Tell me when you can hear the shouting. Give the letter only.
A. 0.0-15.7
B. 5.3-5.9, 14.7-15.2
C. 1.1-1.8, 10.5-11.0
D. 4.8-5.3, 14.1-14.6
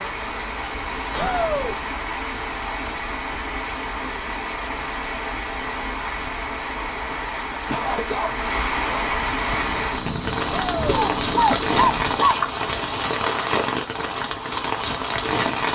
C.